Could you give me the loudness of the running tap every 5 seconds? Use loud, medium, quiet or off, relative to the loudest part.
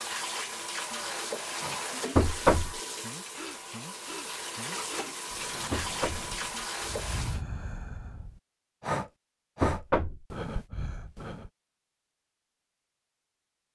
loud, loud, off.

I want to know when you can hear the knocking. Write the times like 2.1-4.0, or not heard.
2.1-2.8, 5.7-6.3, 9.6-10.2.